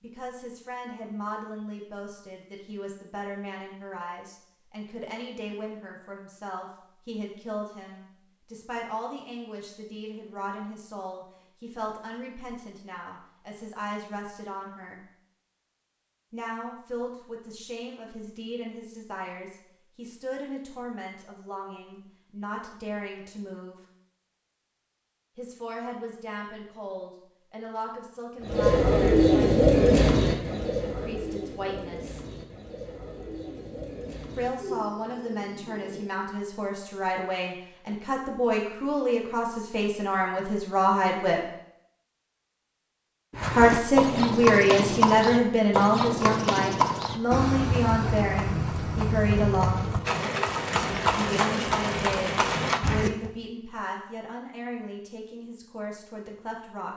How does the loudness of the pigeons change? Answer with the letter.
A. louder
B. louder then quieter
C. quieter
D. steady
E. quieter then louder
C.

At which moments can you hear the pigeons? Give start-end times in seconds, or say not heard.
28.4-36.1.